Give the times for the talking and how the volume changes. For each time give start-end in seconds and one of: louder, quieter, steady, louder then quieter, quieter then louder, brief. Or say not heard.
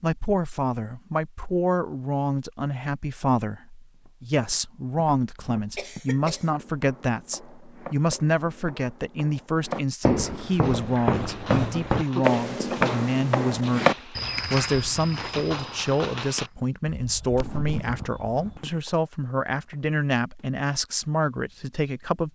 0.0-22.3 steady.